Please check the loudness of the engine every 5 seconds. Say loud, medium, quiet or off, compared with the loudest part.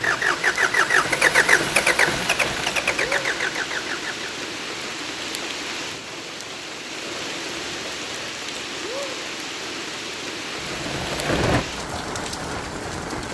loud, off, medium.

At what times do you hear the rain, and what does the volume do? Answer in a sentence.
You can hear the rain from 0.0 to 13.2 s, at a steady volume.